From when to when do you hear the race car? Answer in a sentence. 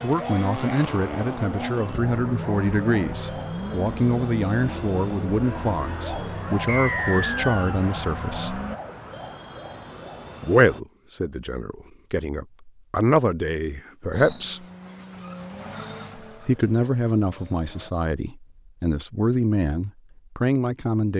The race car can be heard from 0.0 to 8.8 s and from 14.1 to 17.9 s.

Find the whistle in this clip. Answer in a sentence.
The whistle can be heard from 6.7 to 7.8 s.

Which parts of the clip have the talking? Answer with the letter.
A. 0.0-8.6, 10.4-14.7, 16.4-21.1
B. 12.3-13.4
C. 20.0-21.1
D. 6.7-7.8
A.